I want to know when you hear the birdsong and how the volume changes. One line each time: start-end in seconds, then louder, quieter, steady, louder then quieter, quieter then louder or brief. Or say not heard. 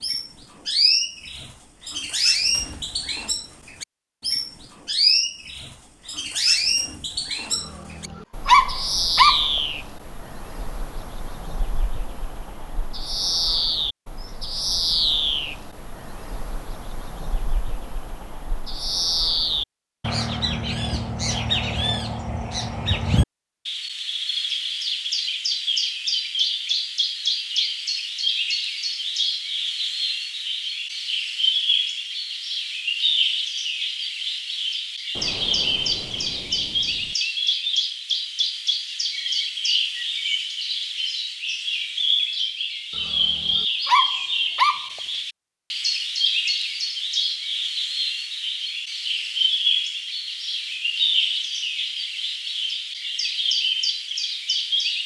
0.0-55.0 steady.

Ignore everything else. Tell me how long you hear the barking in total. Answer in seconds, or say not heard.
4 s.